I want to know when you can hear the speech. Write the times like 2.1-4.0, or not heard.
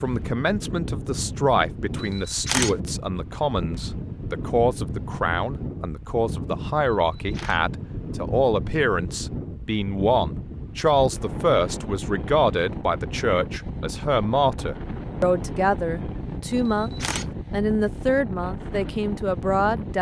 0.0-19.9.